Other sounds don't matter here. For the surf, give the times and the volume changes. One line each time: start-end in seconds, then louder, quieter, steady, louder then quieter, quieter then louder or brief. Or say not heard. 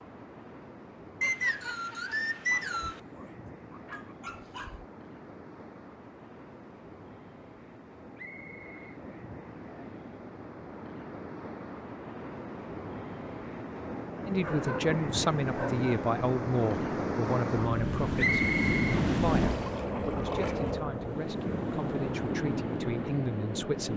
0.0-23.9 louder.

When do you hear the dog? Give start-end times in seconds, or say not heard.
2.5-4.9, 14.4-16.1.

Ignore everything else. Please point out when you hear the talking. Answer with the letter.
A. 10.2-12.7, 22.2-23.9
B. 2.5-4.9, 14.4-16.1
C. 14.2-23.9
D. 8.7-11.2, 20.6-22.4
C.